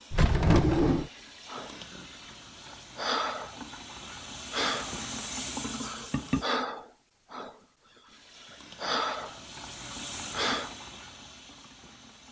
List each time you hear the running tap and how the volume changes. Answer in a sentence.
The running tap can be heard from 0.0 to 6.5 s, getting louder; and from 8.1 to 12.2 s, getting louder then quieter.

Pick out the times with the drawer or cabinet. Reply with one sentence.
You can hear the drawer or cabinet from 0.1 to 1.1 s.